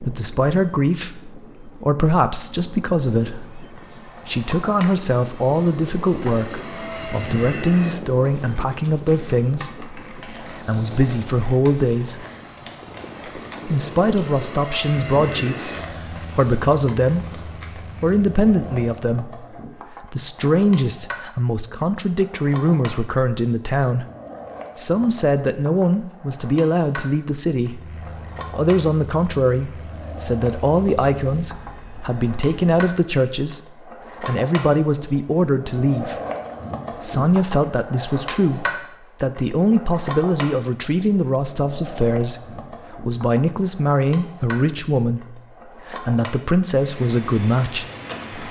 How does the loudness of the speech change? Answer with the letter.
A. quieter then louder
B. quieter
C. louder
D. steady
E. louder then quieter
D.